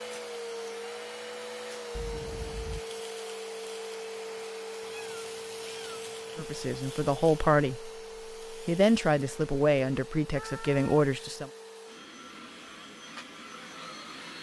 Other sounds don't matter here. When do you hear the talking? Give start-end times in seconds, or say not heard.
6.3-7.9, 8.5-11.5.